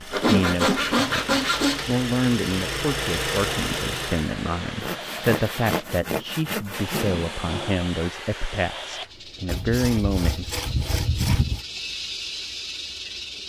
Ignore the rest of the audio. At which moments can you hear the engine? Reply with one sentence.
You can hear the engine from 0.0 to 4.3 s.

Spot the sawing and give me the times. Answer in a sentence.
You can hear the sawing from 0.1 to 1.9 s, from 4.8 to 7.1 s and from 9.4 to 11.6 s.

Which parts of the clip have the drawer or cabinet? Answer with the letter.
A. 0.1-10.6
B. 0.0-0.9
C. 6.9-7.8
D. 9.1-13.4
C.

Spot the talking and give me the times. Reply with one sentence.
The talking can be heard from 0.1 to 10.6 s.